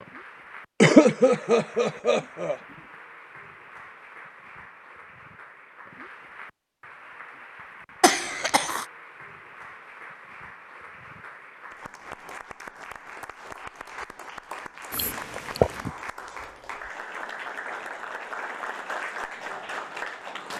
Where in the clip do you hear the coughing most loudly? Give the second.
1 s.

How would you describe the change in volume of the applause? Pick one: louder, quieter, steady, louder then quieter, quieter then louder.
louder.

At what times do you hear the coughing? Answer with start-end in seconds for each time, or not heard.
0.8-2.5, 8.0-8.8, 14.9-15.9.